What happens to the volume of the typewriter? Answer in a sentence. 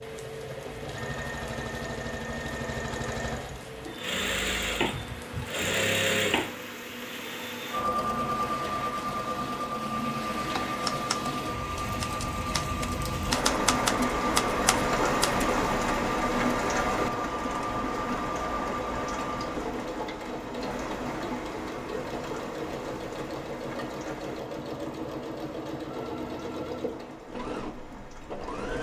The volume of the typewriter goes down, then up.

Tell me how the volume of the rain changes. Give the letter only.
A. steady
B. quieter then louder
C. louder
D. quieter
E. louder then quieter
E.